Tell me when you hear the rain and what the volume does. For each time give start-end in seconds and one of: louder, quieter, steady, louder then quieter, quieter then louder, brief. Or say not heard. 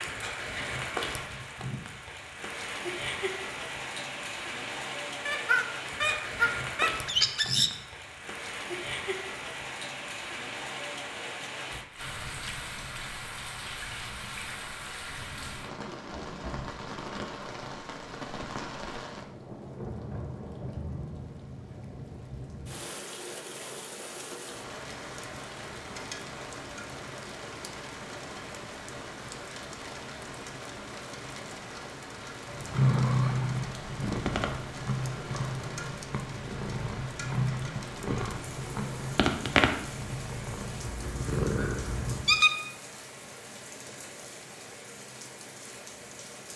0.0-46.5 quieter.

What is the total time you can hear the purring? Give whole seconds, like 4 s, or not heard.
10 s.